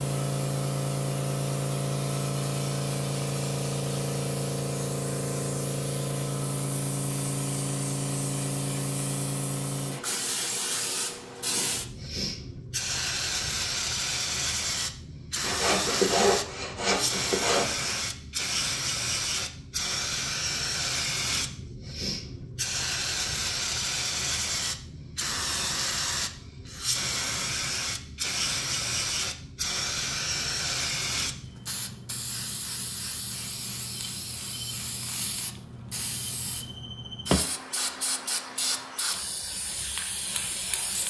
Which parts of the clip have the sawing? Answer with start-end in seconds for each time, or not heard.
15.4-18.0.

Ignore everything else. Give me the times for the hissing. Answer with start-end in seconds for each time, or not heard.
0.0-41.0.